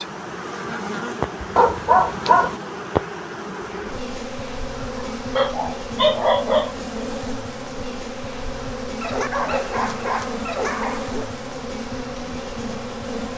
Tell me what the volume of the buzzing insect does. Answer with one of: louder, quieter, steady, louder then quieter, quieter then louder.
steady.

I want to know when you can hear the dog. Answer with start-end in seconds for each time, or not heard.
1.6-2.5, 4.8-6.8, 9.0-11.3.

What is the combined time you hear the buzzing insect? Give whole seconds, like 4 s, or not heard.
13 s.